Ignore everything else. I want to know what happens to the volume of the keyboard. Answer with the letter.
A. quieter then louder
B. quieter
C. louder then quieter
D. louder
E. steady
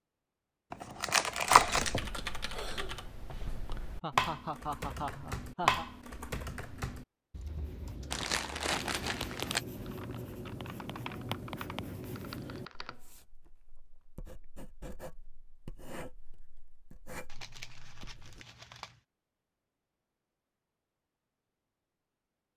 C.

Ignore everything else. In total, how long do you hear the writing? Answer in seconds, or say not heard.
11 s.